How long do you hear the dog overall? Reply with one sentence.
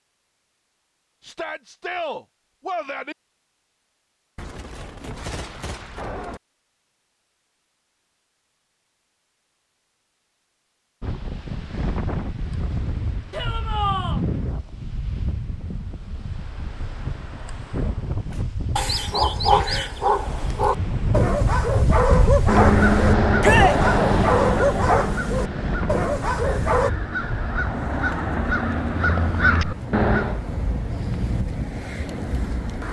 You can hear the dog for 8 seconds altogether.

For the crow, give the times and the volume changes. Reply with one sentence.
The crow can be heard from 22.4 to 30.4 s, getting quieter then louder.